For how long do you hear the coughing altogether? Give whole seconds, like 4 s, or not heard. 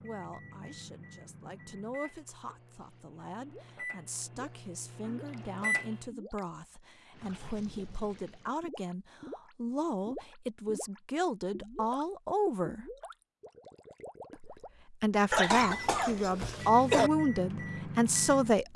2 s.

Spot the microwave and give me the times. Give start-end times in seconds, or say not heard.
0.0-6.0, 15.6-18.6.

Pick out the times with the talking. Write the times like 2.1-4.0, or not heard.
0.0-12.8, 14.3-18.7.